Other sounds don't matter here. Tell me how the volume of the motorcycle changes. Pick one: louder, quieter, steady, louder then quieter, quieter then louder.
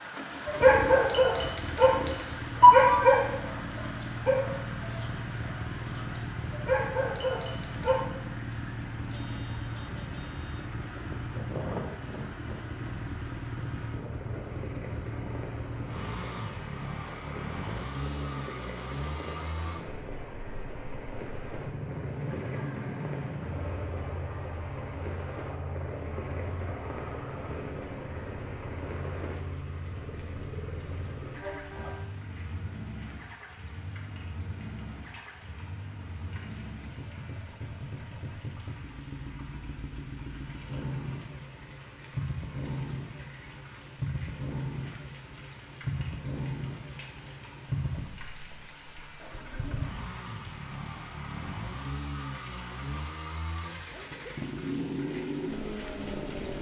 steady.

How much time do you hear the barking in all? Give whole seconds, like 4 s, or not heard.
8 s.